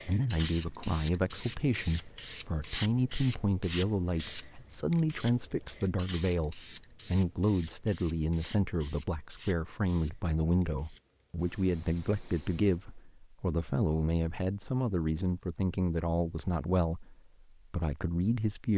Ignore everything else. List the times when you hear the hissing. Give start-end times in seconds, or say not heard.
0.0-13.0.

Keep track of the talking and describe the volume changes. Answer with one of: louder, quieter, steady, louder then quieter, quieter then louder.
steady.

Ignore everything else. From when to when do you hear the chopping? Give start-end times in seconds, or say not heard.
not heard.